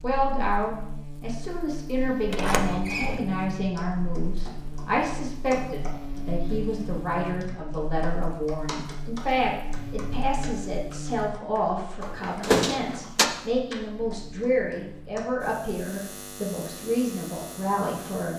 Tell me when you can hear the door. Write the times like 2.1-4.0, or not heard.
2.3-3.2, 12.0-13.3.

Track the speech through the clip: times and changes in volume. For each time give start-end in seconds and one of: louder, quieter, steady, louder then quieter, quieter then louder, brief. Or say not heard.
0.0-18.3 steady.